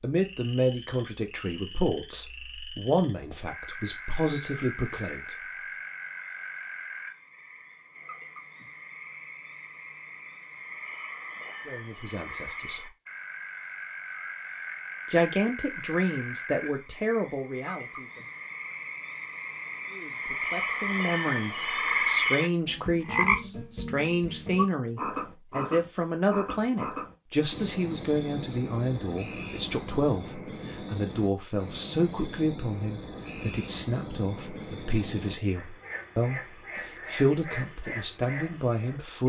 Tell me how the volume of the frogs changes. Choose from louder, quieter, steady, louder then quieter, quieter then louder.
louder then quieter.